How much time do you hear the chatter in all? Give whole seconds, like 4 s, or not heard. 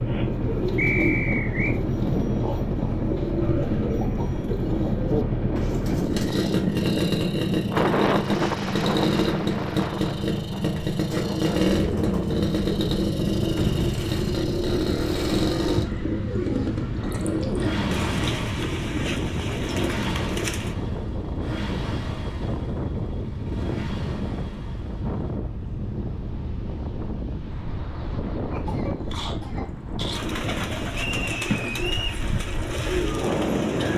not heard.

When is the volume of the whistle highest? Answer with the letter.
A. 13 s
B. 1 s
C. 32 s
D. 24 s
B.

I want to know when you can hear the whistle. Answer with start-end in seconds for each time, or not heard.
0.8-1.8, 30.9-32.2.